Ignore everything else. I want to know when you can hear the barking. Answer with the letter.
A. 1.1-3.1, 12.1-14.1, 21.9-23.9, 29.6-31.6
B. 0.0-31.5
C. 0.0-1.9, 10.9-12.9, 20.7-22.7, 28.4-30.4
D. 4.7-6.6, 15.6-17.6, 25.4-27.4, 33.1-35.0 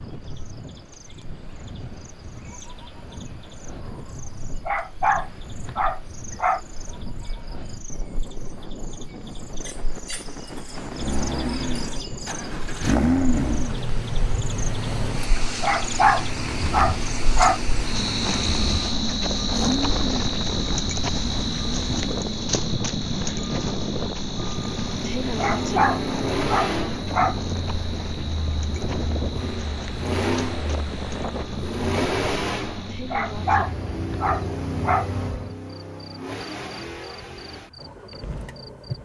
D.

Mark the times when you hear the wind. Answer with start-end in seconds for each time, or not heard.
0.0-31.5.